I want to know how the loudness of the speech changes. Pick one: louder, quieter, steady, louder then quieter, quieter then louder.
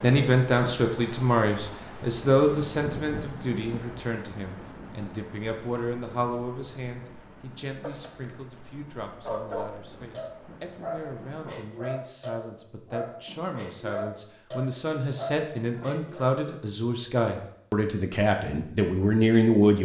quieter then louder.